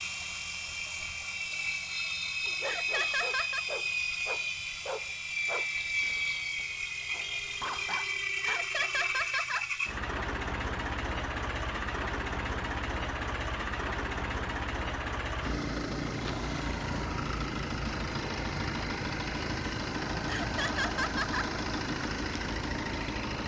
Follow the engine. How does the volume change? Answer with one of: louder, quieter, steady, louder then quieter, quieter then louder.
steady.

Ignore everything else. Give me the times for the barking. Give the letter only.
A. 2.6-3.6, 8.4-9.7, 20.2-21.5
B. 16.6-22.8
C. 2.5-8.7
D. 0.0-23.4
C.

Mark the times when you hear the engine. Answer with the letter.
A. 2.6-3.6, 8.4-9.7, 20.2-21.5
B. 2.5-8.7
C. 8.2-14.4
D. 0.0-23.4
D.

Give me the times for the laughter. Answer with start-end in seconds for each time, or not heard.
2.6-3.6, 8.4-9.7, 20.2-21.5.